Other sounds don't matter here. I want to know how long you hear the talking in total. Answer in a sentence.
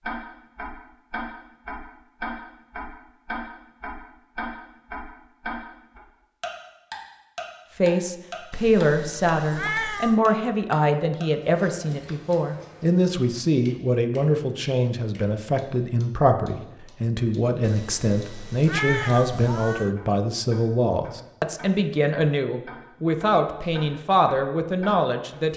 You can hear the talking for 18 seconds altogether.